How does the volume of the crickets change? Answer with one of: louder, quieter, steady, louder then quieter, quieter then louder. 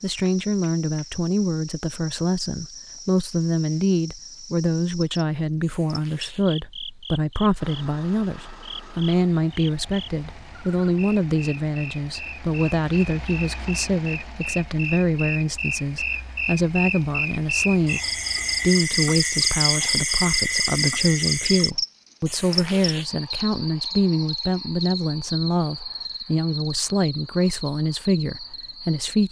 louder then quieter.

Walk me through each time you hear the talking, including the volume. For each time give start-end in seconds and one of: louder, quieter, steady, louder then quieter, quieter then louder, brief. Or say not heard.
0.0-18.0 steady
18.6-29.2 steady.